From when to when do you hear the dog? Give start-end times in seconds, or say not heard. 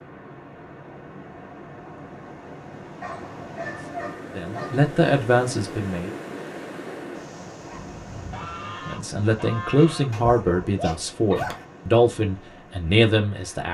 3.0-4.9, 10.1-11.7.